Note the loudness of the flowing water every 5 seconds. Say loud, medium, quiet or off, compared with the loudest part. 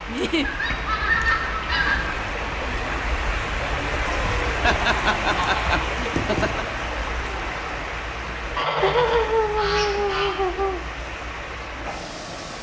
loud, loud, medium.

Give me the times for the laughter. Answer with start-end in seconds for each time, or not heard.
0.1-0.5, 4.6-6.7, 8.8-10.8.